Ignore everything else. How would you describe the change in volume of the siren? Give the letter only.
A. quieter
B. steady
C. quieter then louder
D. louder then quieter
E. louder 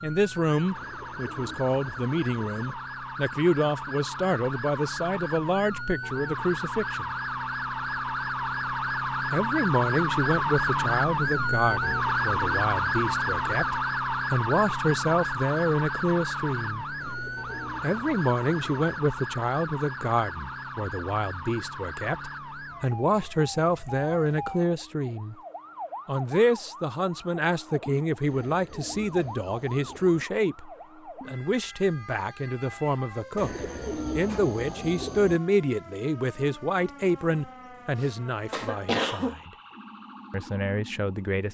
D.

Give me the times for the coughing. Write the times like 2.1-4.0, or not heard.
38.0-39.4.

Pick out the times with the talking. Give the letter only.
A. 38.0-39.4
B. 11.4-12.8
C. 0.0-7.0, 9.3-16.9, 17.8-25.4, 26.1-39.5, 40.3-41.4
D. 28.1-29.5
C.